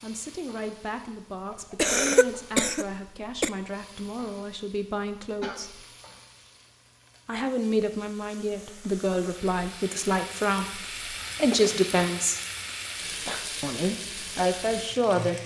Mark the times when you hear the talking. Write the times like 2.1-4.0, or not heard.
0.0-5.8, 7.2-12.4, 13.6-15.3.